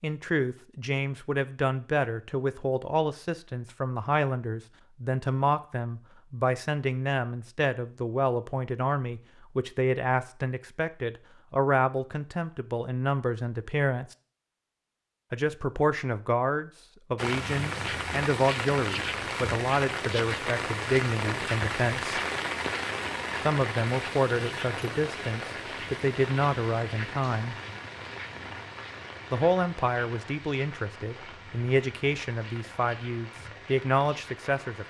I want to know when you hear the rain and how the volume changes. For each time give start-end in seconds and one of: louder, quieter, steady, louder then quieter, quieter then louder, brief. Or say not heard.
17.1-34.8 quieter.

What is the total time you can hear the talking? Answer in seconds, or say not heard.
31 s.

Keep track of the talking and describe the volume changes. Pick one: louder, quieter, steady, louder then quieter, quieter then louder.
steady.